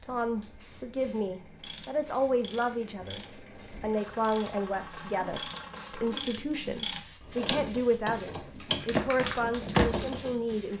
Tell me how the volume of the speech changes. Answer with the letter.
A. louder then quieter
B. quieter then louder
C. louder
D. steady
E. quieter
D.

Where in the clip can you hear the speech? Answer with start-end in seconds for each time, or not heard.
0.0-3.2, 3.8-10.7.